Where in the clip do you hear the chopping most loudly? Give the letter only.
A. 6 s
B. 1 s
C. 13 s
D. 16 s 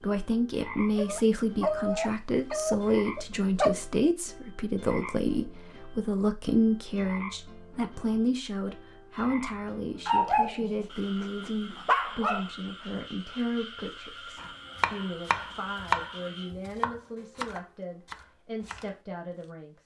D.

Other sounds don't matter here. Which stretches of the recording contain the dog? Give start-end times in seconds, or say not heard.
0.9-3.8, 10.1-12.4.